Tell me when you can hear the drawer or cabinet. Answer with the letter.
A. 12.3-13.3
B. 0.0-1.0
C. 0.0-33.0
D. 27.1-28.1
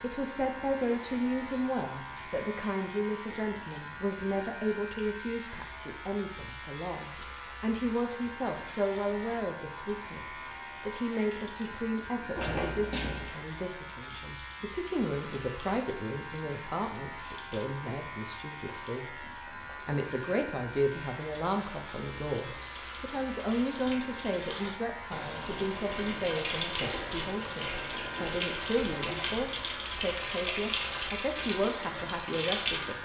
A.